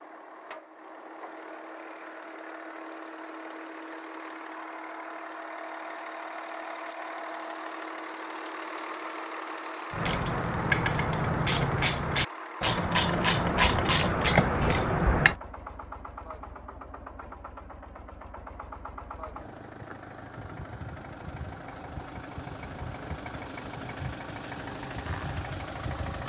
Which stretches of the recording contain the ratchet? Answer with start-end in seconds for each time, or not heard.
9.9-15.3.